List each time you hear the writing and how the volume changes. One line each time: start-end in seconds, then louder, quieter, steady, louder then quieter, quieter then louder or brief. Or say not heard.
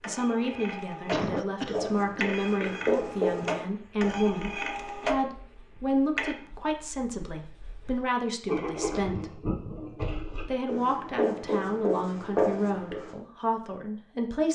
1.7-13.2 quieter then louder.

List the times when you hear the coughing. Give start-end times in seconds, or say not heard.
1.1-2.3.